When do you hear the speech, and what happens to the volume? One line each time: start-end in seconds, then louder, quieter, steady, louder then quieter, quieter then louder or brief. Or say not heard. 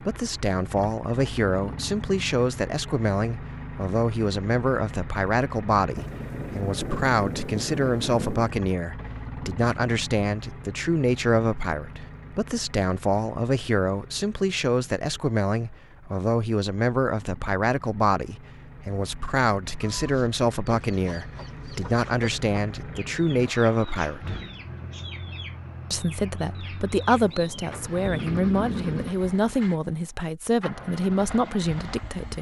0.0-24.4 steady
25.9-32.3 steady.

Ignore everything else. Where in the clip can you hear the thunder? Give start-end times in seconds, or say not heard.
6.0-8.6, 27.1-29.1.